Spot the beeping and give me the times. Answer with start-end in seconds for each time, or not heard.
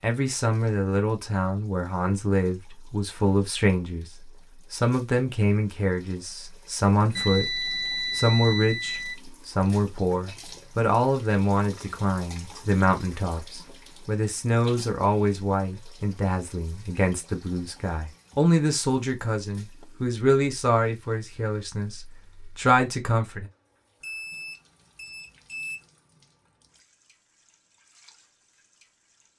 7.2-9.2, 24.0-25.8.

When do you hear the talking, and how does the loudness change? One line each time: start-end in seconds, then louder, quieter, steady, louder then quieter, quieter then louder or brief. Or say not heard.
0.0-23.5 steady.